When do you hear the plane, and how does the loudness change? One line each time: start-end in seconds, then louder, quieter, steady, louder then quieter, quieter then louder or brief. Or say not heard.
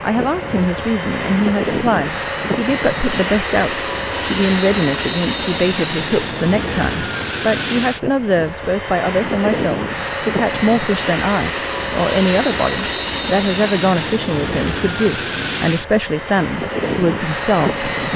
0.0-18.1 steady.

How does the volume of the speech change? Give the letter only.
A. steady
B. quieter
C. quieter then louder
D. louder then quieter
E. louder
A.